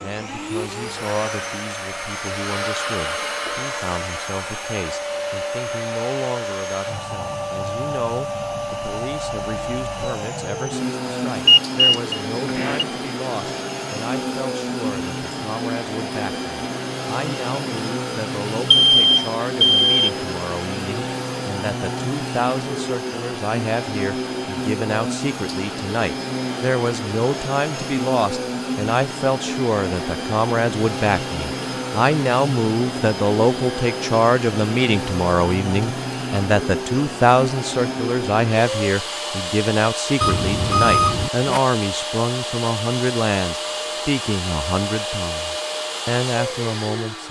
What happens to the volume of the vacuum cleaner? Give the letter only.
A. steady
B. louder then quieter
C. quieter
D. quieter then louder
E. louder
A.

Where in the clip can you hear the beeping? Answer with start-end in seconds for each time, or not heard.
11.4-12.8, 18.7-19.9, 40.2-41.6.